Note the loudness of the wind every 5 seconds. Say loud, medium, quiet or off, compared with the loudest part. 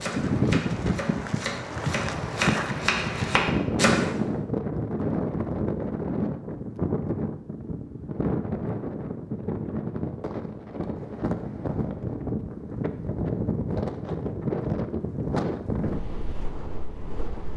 loud, loud, loud, medium.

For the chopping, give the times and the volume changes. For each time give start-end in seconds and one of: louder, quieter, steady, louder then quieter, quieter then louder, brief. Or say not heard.
0.0-4.1 louder.